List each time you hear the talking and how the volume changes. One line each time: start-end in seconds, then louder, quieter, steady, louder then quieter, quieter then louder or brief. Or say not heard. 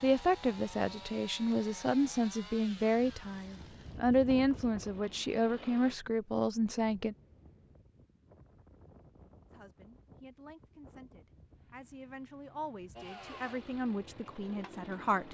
0.0-7.2 steady
9.5-15.2 louder.